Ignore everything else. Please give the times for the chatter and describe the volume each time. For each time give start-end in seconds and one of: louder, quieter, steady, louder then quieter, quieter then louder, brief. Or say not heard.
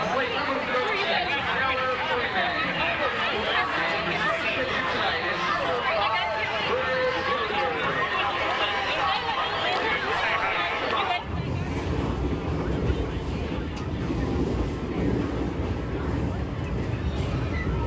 0.0-17.8 quieter.